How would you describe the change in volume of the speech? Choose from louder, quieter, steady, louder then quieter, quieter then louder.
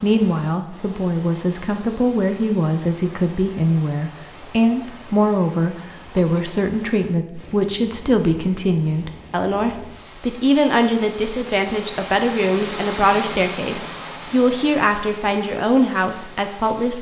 steady.